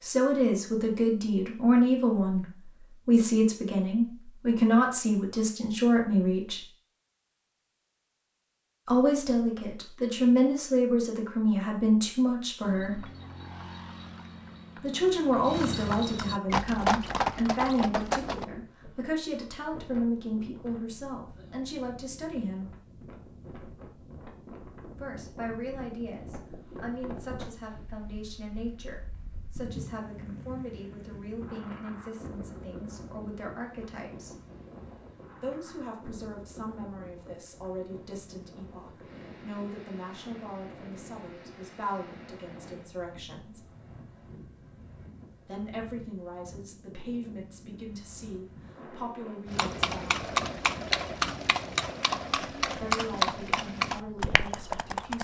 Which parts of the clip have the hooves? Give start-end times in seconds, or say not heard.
12.6-18.4, 49.5-55.1.